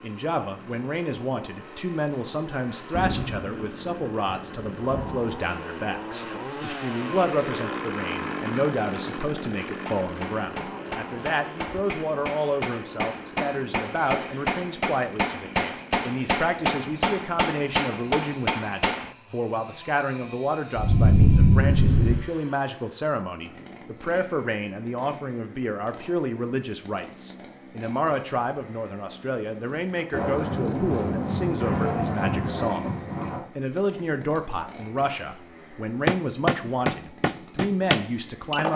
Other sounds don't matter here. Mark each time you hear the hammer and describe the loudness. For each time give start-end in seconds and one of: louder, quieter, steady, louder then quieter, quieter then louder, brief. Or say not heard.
9.7-19.1 louder
36.0-38.7 brief.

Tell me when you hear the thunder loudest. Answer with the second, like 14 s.
21 s.